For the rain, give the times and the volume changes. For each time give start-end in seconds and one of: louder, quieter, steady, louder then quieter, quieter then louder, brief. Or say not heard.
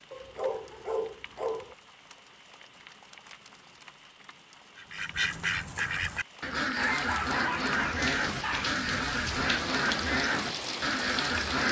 0.0-11.6 louder.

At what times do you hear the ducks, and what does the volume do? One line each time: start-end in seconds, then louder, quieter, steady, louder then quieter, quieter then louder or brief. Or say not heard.
4.8-11.6 steady.